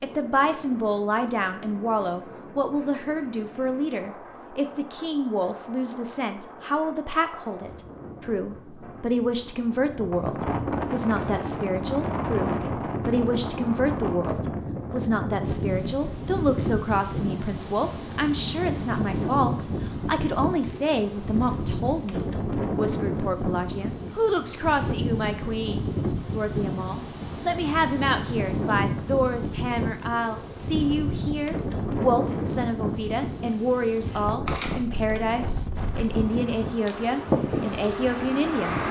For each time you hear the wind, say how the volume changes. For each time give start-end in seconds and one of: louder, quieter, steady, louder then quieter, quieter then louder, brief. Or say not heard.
0.0-38.8 louder.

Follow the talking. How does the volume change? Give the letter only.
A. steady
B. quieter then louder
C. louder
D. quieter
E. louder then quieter
A.